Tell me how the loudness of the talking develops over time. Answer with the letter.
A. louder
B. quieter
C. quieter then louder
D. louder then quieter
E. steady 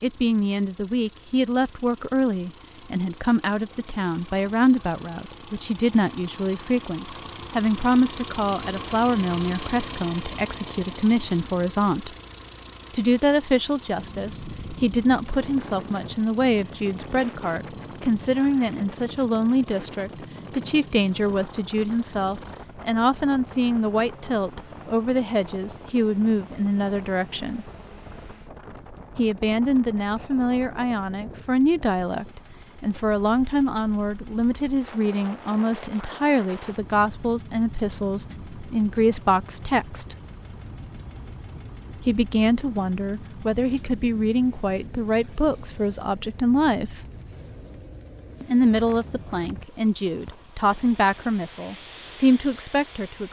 E.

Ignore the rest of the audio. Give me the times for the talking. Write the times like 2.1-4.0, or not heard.
0.0-12.1, 12.9-27.6, 29.1-40.1, 42.0-47.0, 48.4-53.2.